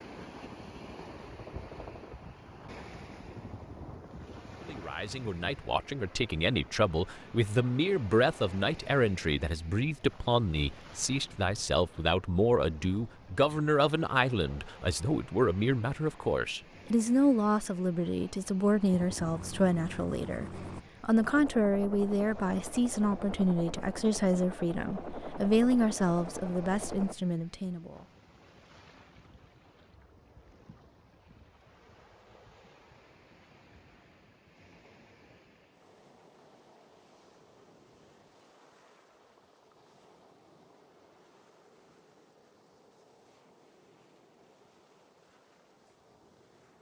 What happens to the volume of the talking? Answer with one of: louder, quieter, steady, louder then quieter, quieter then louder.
steady.